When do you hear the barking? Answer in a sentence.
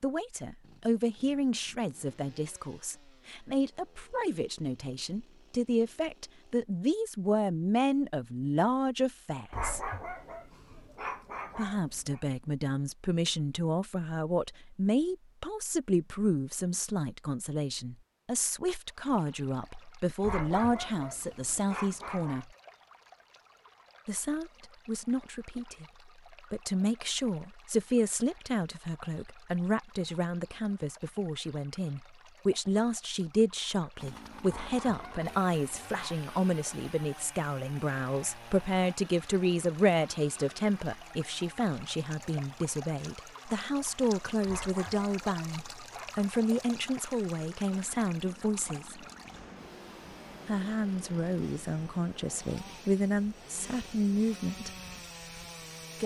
You can hear the barking from 9.5 to 12.2 s, from 20.2 to 22.4 s, from 34.5 to 36.2 s and from 44.5 to 46.1 s.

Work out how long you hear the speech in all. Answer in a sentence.
The speech can be heard for 49 seconds in total.